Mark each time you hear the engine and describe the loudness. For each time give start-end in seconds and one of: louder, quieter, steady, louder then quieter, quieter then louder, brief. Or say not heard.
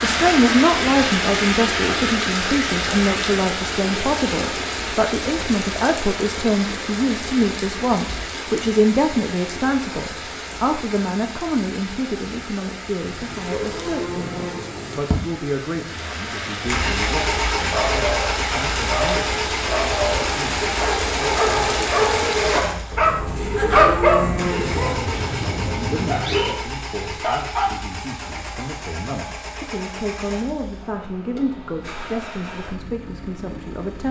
16.6-34.0 quieter.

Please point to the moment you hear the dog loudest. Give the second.
24 s.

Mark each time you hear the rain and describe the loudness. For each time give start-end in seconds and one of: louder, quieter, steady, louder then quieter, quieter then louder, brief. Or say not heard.
0.0-22.6 quieter then louder.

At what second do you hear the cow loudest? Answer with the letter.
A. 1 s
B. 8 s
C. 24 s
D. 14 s
C.